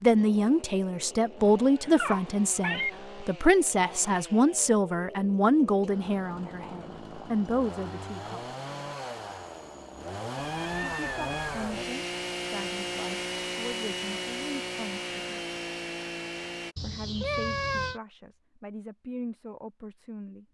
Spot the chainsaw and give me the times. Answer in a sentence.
The chainsaw can be heard from 0.0 to 16.8 s.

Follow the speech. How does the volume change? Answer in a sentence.
The volume of the speech goes down.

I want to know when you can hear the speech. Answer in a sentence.
You can hear the speech from 0.0 to 8.4 s, from 10.8 to 15.4 s and from 16.8 to 20.4 s.